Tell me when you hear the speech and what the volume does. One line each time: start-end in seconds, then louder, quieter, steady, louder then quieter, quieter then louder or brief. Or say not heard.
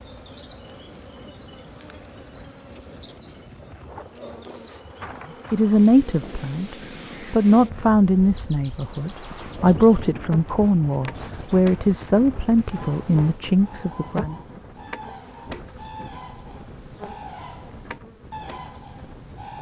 5.5-14.3 steady.